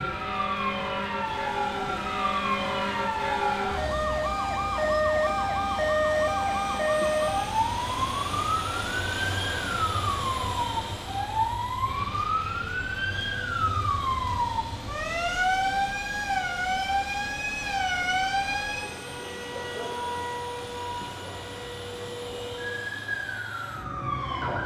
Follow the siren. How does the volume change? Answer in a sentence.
The loudness of the siren goes down.